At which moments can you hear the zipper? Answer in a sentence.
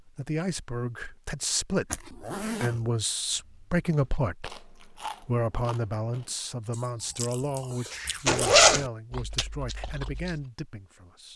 You can hear the zipper from 1.9 to 2.9 s and from 8.2 to 8.8 s.